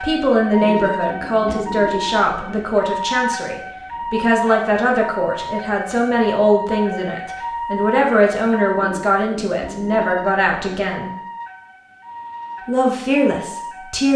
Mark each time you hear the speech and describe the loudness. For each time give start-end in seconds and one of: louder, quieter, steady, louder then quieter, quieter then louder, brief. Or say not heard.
0.0-11.1 steady
12.7-14.1 brief.